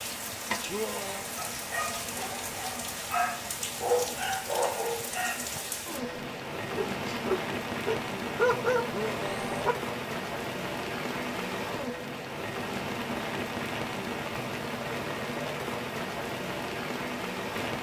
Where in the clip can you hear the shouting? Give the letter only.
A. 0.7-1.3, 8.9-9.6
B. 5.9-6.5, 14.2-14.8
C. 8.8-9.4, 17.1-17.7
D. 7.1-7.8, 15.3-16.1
A.